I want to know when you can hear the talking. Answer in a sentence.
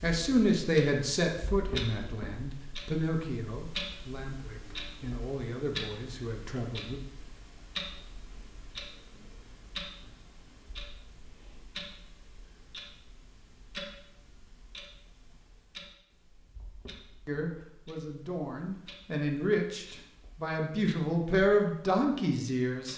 The talking can be heard from 0.0 to 7.0 s and from 17.2 to 22.9 s.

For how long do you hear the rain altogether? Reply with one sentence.
The rain can't be heard in this clip.